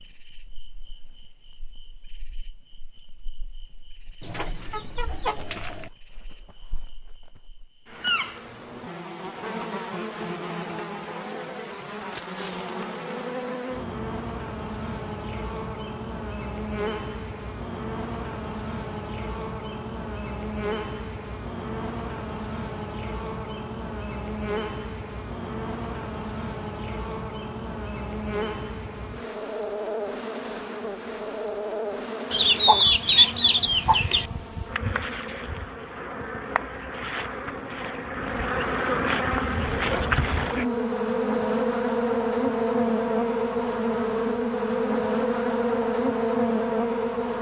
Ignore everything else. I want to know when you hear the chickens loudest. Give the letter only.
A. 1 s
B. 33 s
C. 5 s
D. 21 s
B.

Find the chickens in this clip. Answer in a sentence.
The chickens can be heard from 4.2 to 5.9 s and from 32.3 to 34.2 s.